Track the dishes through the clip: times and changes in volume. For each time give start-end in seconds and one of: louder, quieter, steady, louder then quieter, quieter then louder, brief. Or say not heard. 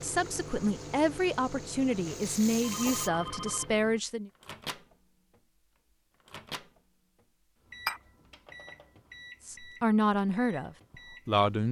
not heard.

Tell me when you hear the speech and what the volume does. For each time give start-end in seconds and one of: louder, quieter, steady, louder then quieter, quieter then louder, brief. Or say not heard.
0.0-4.3 steady
9.4-11.6 brief.